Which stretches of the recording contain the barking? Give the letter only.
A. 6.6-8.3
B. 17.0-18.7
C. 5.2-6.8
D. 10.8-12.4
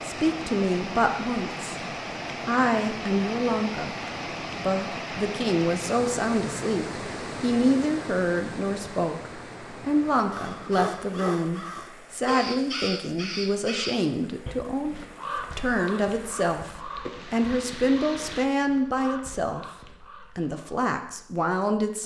D.